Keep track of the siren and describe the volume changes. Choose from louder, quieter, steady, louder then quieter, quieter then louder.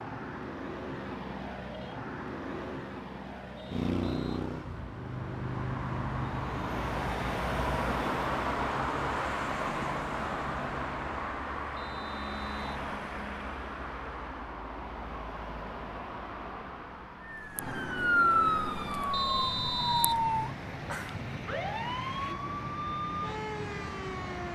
quieter.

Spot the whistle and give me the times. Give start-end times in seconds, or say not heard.
3.5-4.4, 11.8-12.7, 19.1-20.2.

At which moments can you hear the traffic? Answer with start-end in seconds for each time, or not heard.
0.0-24.5.